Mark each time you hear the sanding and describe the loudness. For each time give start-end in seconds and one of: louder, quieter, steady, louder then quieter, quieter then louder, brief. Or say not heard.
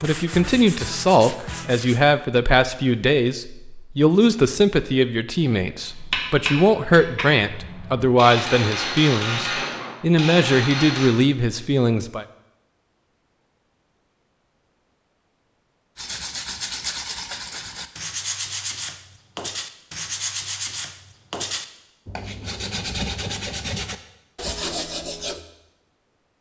0.0-2.0 brief
15.9-25.4 steady.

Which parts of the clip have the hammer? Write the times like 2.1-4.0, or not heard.
5.8-11.1.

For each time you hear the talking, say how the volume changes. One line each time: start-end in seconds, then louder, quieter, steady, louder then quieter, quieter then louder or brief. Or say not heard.
0.0-12.2 steady.